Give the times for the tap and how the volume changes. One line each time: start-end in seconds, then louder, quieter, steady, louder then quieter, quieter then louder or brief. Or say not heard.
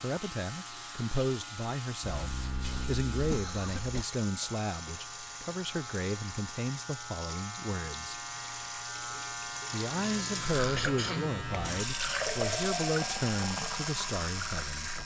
0.0-15.0 louder.